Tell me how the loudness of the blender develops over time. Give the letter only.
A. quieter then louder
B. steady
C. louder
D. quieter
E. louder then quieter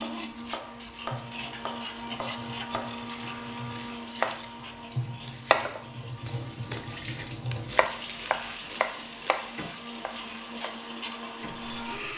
A.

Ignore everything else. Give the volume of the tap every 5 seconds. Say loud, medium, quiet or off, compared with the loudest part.
medium, loud, medium.